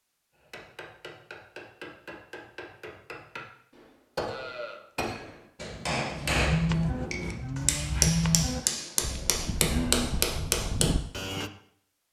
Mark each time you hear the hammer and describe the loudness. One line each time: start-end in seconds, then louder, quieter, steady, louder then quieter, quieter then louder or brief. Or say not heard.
0.3-10.9 louder.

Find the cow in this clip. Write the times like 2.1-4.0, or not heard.
4.2-11.5.